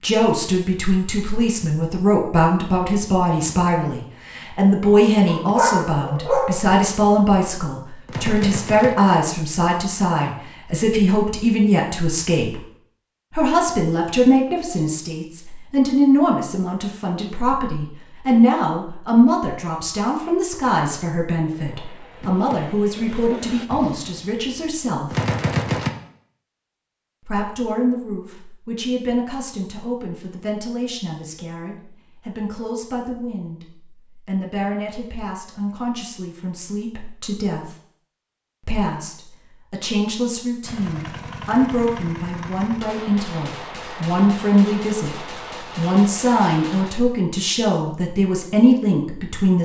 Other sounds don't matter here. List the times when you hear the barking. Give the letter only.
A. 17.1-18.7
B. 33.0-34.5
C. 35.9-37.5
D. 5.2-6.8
D.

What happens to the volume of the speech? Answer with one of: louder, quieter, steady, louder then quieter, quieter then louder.
quieter then louder.